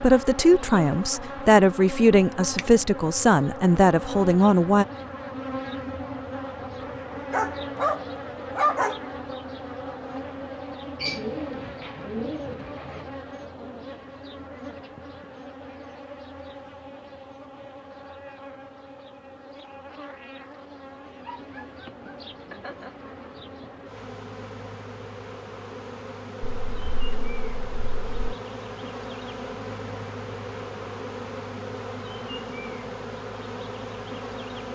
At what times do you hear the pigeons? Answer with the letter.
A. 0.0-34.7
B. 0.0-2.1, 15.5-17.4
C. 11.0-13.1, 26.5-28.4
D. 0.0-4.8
C.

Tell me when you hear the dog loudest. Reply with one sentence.
The loudest moment of the dog is at 9 seconds.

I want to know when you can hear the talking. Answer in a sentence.
The talking can be heard from 0.0 to 4.8 s.